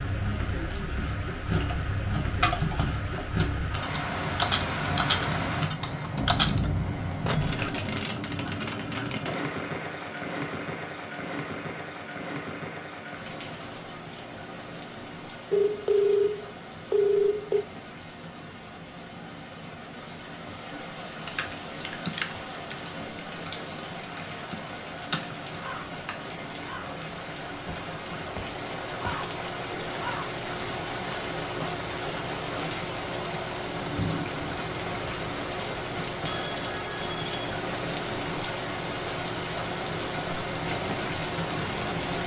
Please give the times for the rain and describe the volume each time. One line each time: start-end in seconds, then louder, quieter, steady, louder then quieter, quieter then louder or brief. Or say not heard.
0.0-42.2 quieter then louder.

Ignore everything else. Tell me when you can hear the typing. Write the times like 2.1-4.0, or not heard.
1.4-6.7, 20.9-26.1.